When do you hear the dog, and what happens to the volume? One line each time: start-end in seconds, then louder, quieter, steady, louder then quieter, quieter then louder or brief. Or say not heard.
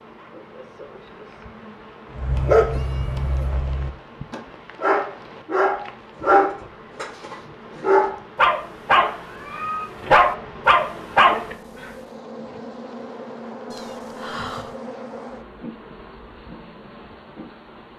2.1-11.4 louder.